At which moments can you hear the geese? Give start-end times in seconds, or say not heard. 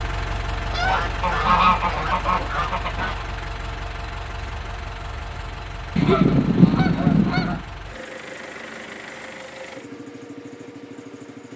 0.7-3.2, 6.0-7.6.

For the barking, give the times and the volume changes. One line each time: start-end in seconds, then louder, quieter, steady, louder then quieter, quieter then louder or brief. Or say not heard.
not heard.